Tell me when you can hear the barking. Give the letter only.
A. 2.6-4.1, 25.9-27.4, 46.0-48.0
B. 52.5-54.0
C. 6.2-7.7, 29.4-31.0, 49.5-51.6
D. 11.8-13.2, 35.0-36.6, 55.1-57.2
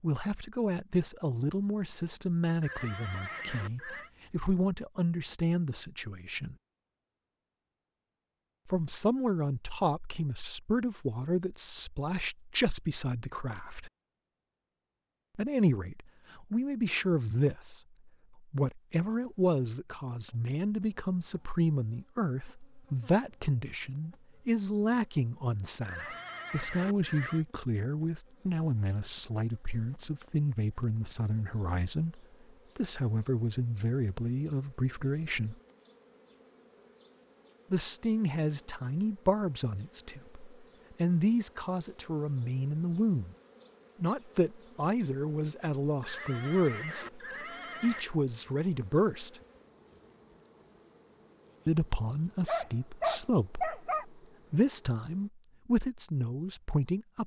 B.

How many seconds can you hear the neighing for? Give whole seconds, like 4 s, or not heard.
5 s.